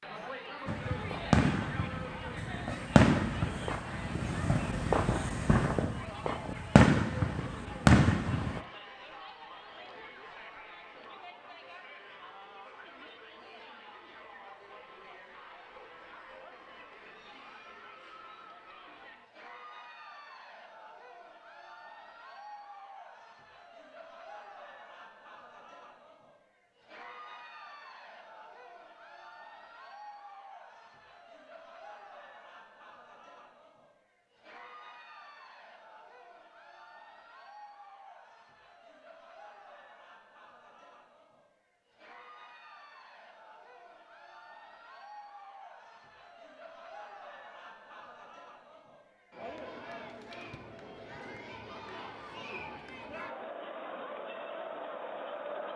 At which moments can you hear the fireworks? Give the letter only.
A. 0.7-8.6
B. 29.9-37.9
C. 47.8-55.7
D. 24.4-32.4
A.